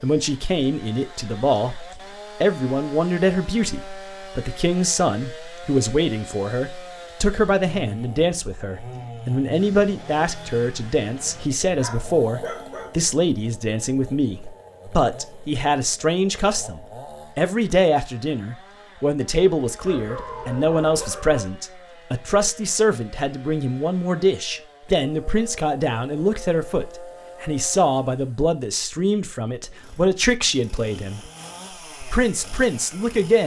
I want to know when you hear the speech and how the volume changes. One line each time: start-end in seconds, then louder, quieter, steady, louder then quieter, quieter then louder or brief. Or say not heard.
0.0-31.3 steady
32.0-33.4 brief.